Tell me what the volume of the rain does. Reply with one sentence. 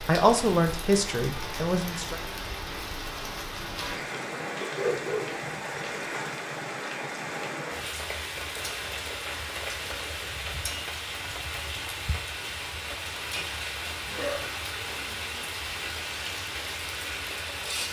The volume of the rain stays about the same.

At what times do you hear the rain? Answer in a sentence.
You can hear the rain from 0.0 to 17.8 s.